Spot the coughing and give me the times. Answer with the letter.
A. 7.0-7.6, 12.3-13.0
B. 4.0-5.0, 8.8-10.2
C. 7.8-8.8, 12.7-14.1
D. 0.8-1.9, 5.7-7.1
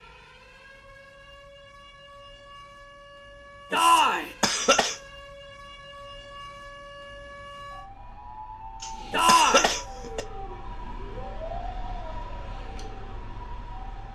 B.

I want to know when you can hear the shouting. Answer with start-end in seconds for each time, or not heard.
3.7-4.3, 9.1-9.8.